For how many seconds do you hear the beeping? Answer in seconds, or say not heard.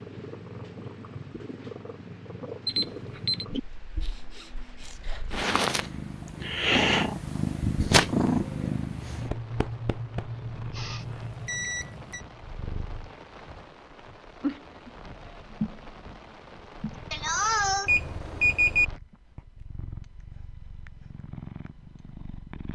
3 s.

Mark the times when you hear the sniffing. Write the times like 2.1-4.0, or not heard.
4.0-5.4, 10.3-11.1, 17.1-17.9.